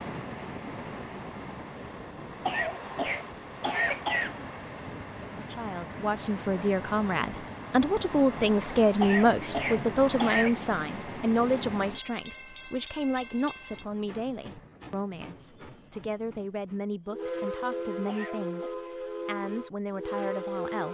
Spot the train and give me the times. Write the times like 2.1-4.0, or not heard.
0.0-20.9.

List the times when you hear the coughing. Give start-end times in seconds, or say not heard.
2.5-4.3, 9.0-10.7, 18.1-18.7.